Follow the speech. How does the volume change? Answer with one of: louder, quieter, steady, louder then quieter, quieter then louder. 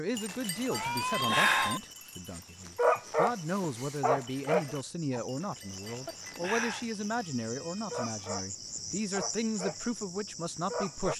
steady.